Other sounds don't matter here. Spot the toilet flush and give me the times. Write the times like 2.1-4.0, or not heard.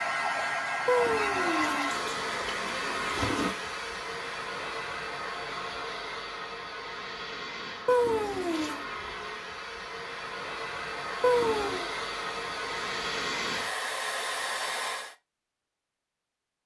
0.8-3.5, 7.8-8.8, 11.2-11.9.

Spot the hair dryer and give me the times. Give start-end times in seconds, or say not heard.
0.0-15.2.